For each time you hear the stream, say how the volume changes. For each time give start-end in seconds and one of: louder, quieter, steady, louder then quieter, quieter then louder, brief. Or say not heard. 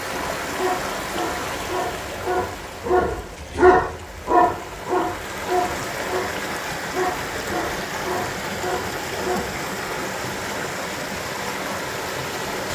0.0-12.7 quieter then louder.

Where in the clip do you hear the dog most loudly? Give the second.
4 s.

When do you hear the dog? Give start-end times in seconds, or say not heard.
0.1-9.6.